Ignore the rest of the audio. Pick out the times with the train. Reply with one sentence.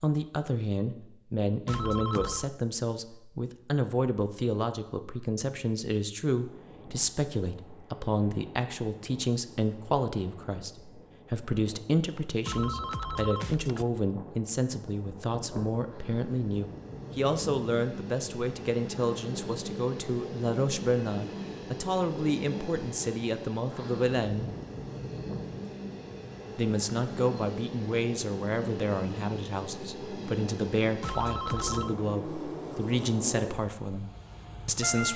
You can hear the train from 6.3 to 35.1 s.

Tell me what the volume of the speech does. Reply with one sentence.
The loudness of the speech stays about the same.